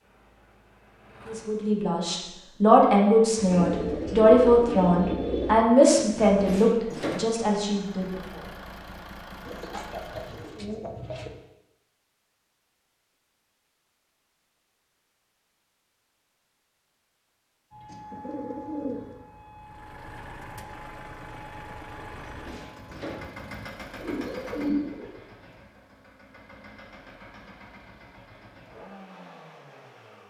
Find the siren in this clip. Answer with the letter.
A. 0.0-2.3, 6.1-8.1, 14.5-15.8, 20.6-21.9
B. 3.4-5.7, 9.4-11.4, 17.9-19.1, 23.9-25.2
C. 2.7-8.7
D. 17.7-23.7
D.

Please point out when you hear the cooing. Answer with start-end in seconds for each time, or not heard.
3.4-5.7, 9.4-11.4, 17.9-19.1, 23.9-25.2.